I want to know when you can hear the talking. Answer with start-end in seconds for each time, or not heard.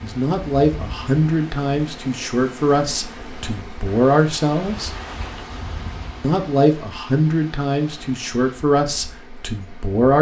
0.0-4.9, 6.2-10.1.